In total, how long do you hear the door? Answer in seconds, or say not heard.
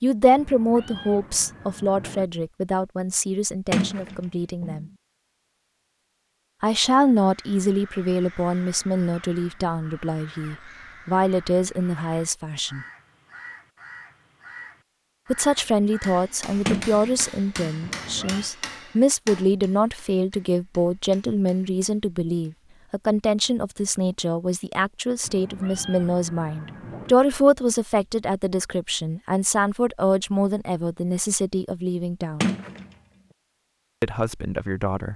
3 s.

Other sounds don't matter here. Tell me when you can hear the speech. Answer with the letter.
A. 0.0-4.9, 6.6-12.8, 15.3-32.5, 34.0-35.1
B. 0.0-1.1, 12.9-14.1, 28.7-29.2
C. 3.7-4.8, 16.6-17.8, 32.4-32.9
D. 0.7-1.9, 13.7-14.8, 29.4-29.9
A.